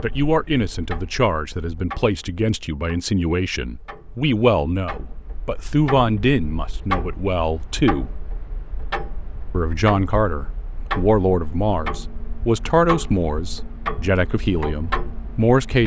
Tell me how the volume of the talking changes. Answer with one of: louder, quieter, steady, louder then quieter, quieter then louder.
steady.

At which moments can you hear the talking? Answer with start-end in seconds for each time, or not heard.
0.0-8.1, 9.5-15.8.